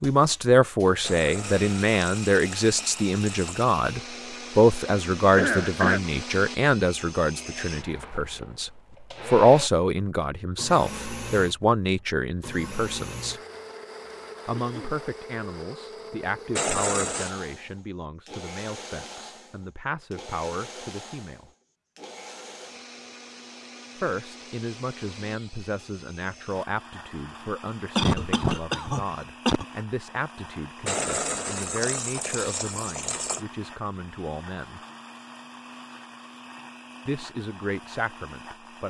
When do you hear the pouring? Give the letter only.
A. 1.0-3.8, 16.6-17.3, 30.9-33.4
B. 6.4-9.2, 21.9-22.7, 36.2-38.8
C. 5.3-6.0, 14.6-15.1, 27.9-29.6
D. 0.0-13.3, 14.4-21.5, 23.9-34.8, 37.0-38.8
A.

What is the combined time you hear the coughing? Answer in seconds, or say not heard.
3 s.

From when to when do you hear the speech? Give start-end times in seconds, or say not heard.
0.0-13.3, 14.4-21.5, 23.9-34.8, 37.0-38.8.